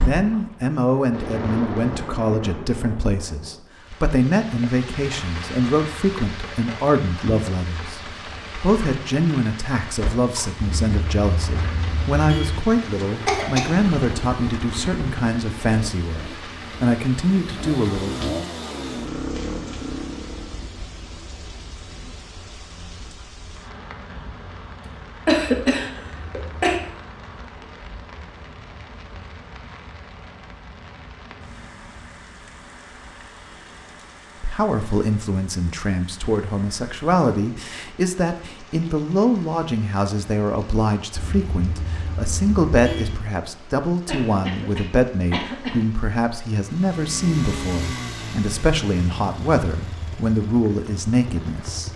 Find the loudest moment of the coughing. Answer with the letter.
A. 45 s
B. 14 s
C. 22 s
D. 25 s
D.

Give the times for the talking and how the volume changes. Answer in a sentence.
You can hear the talking from 0.0 to 18.4 s, at a steady volume; and from 34.4 to 51.9 s, at a steady volume.